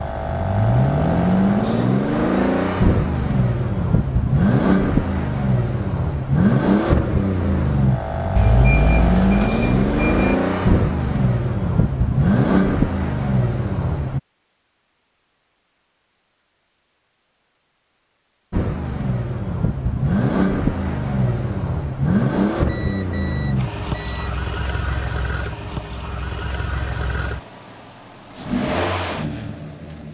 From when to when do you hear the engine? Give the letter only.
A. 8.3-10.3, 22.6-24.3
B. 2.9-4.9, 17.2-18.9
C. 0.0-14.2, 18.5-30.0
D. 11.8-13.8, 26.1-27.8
C.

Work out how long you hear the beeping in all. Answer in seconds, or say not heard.
4 s.